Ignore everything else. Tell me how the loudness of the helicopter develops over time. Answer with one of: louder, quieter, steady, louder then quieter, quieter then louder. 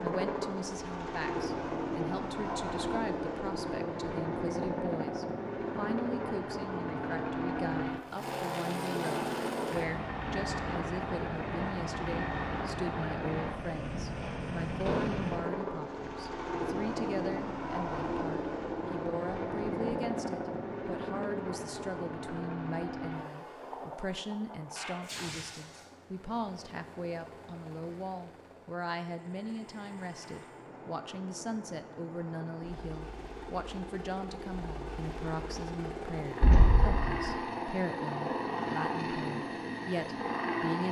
quieter then louder.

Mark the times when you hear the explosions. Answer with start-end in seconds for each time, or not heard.
14.8-15.3, 36.4-37.2.